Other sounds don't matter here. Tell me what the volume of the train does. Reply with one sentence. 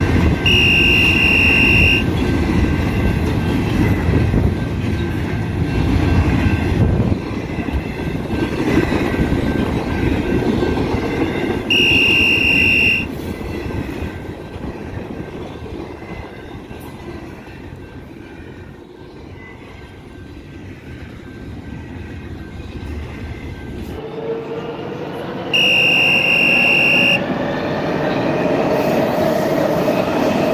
The volume of the train goes down, then up.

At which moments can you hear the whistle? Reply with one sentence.
The whistle can be heard from 0.5 to 2.0 s, from 11.7 to 13.1 s and from 25.5 to 27.2 s.